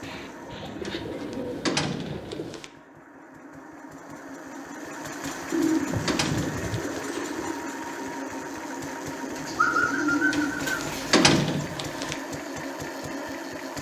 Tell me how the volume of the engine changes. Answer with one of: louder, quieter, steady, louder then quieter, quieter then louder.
louder.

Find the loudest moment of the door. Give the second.
11 s.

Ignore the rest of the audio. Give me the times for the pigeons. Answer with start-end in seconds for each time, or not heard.
0.0-2.6, 5.5-7.5, 9.2-11.3.